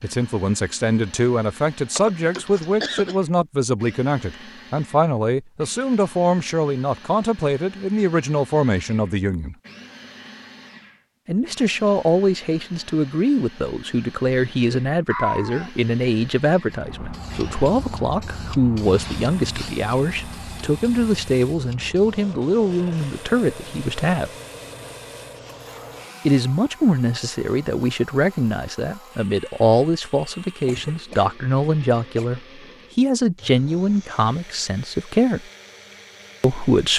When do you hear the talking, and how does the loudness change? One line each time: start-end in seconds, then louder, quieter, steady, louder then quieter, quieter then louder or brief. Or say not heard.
0.0-9.6 steady
11.2-24.3 steady
26.2-35.5 steady
36.4-36.9 brief.